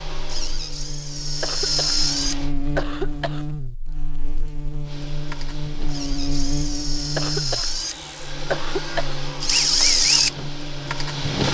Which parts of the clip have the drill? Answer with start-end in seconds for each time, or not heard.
0.0-2.5, 4.8-11.4.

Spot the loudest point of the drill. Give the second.
10 s.